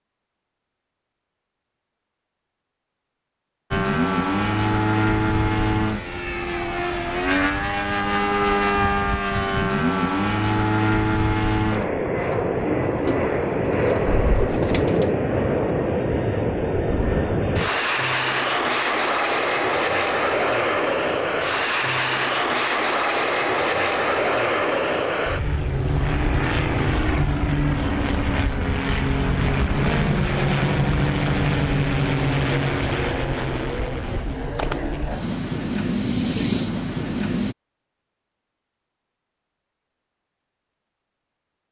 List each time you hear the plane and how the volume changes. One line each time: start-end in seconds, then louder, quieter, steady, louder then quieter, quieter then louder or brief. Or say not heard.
3.7-37.5 steady.